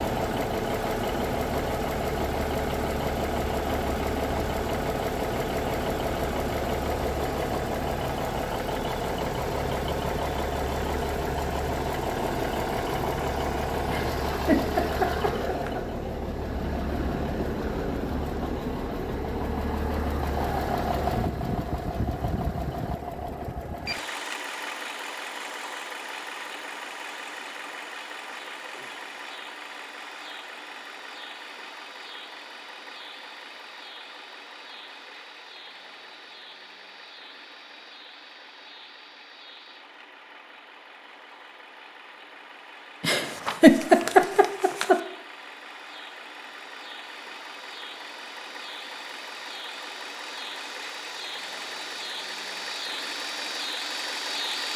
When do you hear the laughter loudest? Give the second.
44 s.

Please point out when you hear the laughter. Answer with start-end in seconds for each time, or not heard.
13.8-15.8, 43.0-45.0.